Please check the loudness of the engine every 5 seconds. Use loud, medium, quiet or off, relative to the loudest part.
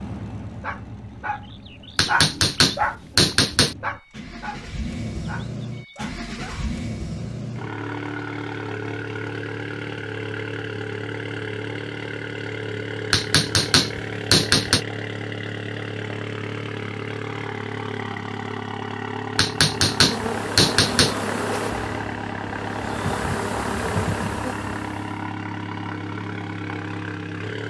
medium, loud, loud, loud, loud, loud.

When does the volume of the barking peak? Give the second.
2 s.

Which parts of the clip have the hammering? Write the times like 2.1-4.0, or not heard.
1.9-3.8, 13.1-14.8, 19.4-21.1.